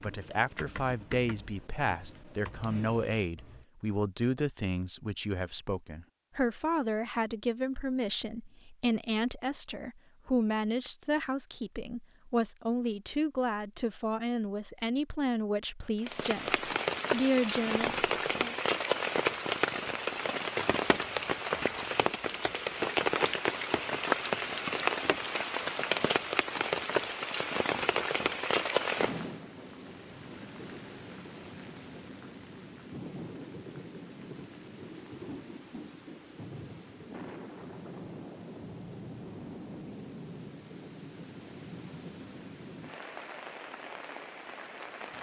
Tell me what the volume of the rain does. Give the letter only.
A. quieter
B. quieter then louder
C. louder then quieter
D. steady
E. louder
A.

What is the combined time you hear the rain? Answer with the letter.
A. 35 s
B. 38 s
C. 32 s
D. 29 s
D.